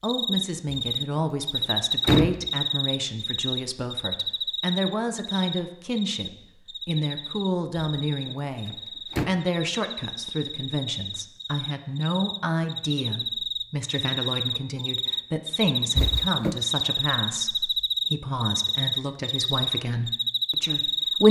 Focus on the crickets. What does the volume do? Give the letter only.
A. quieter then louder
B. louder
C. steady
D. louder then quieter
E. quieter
A.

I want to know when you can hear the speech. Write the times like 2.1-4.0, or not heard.
0.0-21.2.